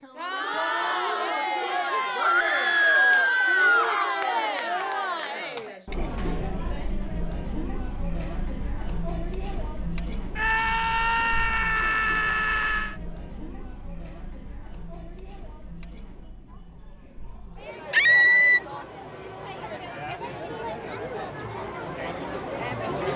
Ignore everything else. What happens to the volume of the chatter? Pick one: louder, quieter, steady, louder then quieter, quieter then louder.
quieter then louder.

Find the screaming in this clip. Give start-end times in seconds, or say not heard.
2.1-4.0, 10.3-12.9, 17.9-18.6.